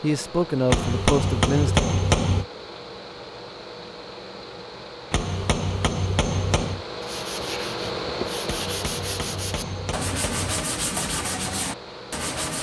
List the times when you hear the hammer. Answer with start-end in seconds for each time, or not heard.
0.7-2.5, 5.1-6.8, 8.4-10.7.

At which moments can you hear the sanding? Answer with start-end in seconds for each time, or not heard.
7.0-12.5.